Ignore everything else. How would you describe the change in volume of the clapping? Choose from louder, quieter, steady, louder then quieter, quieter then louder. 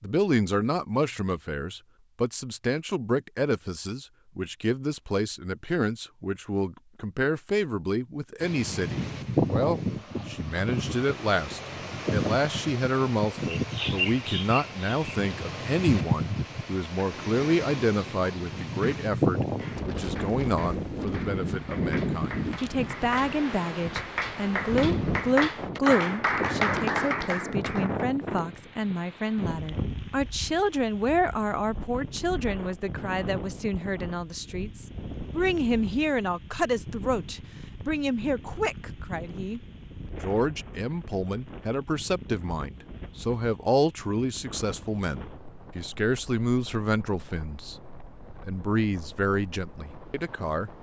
louder.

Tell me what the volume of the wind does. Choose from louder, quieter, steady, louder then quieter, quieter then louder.
quieter.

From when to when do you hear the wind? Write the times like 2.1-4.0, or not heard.
8.4-50.7.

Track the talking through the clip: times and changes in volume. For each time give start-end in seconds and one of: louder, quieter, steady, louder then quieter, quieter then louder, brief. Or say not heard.
0.0-47.8 steady
48.4-50.7 brief.